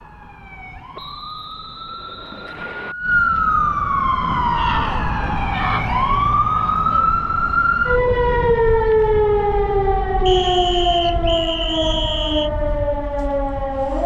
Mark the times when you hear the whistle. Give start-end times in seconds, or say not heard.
0.9-3.0, 10.2-12.5.